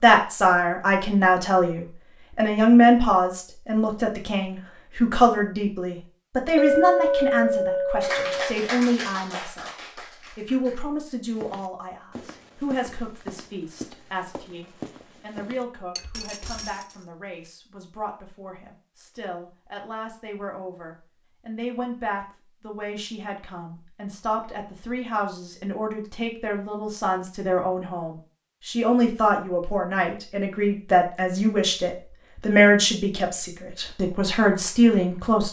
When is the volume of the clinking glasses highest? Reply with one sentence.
The volume of the clinking glasses peaks at 7 seconds.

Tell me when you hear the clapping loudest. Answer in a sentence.
The volume of the clapping peaks at 8 seconds.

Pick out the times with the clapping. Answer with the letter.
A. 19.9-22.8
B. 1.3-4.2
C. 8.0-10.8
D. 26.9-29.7
C.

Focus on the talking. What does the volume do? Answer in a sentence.
The volume of the talking goes down, then up.